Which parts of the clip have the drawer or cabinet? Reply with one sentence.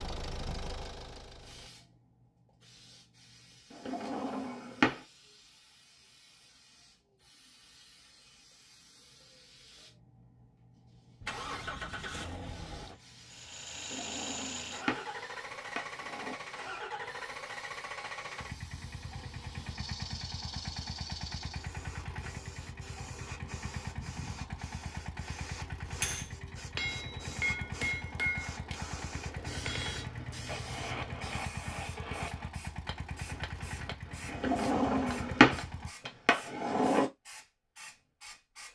You can hear the drawer or cabinet from 3.7 to 5.0 s, from 13.8 to 16.4 s and from 34.3 to 37.1 s.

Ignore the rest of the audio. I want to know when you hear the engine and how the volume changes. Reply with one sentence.
The engine can be heard briefly from 0.0 to 1.7 s; and from 11.2 to 35.9 s, at a steady volume.